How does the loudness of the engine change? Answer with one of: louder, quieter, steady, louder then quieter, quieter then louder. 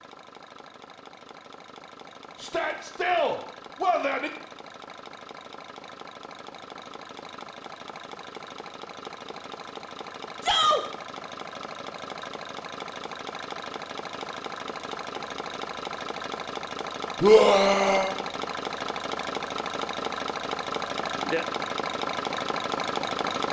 louder.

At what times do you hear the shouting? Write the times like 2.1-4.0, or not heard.
2.4-4.3, 10.4-10.8, 17.2-18.1.